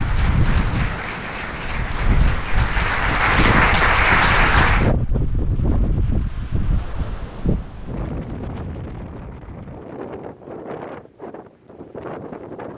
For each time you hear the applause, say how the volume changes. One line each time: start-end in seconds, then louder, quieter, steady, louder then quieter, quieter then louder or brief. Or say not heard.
0.0-5.0 louder.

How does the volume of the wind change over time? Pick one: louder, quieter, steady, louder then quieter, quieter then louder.
quieter.